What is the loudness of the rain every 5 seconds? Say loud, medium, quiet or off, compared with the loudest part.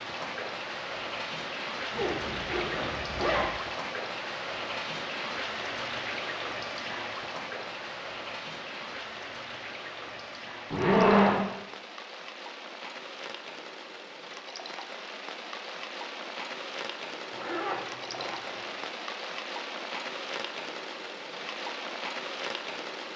loud, loud, medium, loud, loud.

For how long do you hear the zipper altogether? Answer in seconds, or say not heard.
4 s.